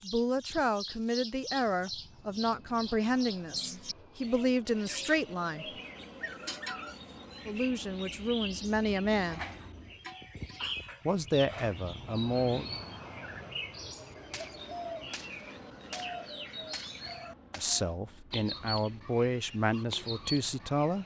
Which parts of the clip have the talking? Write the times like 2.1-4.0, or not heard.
0.0-5.8, 7.5-9.4, 11.1-12.7, 17.6-21.0.